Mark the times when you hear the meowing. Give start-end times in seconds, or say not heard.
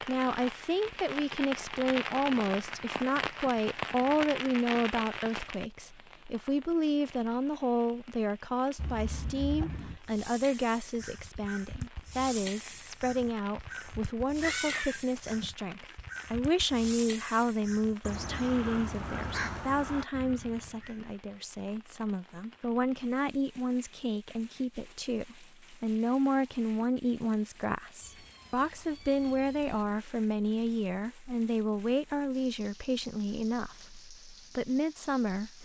8.8-9.9, 14.2-15.9, 28.0-30.1.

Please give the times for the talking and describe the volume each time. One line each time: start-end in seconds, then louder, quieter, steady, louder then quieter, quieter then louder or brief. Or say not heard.
0.1-35.6 steady.